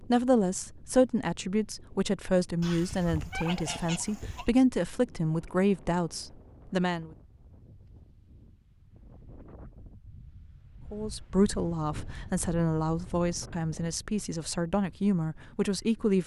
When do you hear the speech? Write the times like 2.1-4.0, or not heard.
0.0-7.1, 10.9-16.2.